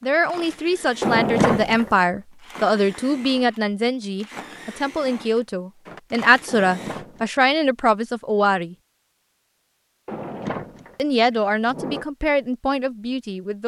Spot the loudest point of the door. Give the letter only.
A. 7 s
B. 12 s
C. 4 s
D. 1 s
D.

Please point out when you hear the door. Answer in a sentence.
The door can be heard from 1.0 to 1.9 s, from 6.5 to 7.3 s and from 10.1 to 12.1 s.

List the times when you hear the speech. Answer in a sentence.
The speech can be heard from 0.0 to 8.8 s and from 10.9 to 13.6 s.